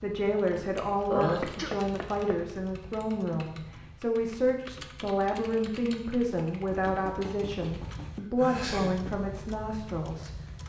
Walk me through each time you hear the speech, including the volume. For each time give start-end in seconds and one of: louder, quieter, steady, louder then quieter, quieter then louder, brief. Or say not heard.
0.0-10.3 steady.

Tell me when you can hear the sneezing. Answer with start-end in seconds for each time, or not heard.
1.1-1.7, 8.3-9.0.